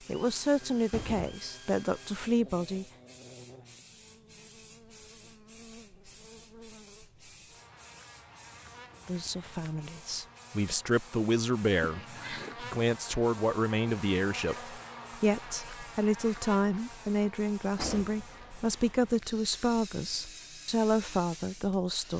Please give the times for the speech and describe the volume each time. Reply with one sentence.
You can hear the speech briefly from 0.1 to 2.9 s; and from 9.1 to 22.1 s, at a steady volume.